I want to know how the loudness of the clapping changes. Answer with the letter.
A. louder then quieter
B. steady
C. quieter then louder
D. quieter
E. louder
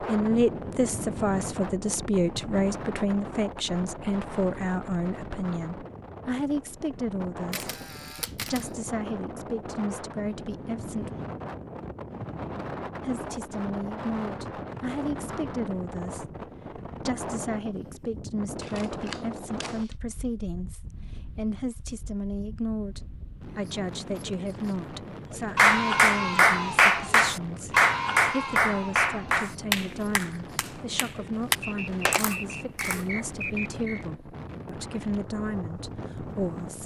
D.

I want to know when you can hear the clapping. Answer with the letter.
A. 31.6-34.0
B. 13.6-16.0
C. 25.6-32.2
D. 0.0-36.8
C.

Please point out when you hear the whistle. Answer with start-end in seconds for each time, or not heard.
31.6-34.0.